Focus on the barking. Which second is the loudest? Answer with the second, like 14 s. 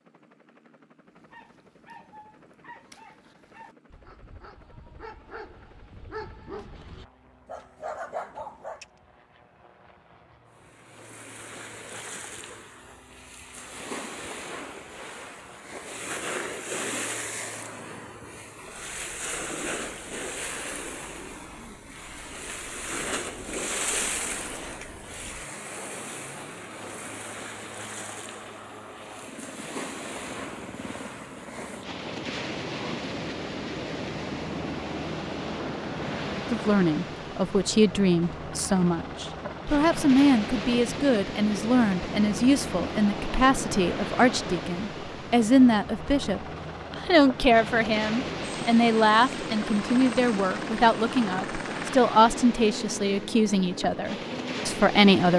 8 s.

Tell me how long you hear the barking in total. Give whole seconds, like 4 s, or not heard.
8 s.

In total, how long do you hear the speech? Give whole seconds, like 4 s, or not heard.
19 s.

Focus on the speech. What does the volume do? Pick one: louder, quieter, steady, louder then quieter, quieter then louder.
steady.